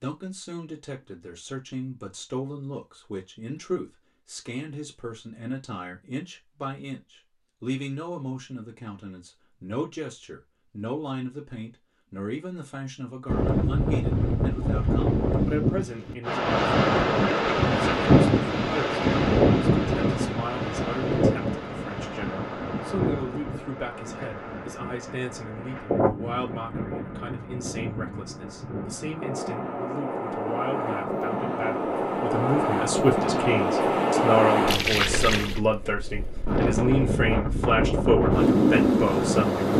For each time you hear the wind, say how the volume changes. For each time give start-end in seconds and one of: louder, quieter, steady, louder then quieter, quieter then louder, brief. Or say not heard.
13.2-39.7 quieter then louder.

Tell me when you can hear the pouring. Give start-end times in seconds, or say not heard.
34.6-35.6.